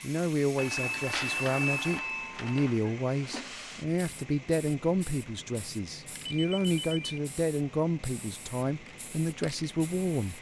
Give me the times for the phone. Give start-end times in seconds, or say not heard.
0.6-2.7, 6.3-7.2.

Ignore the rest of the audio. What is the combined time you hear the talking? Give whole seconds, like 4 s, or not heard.
10 s.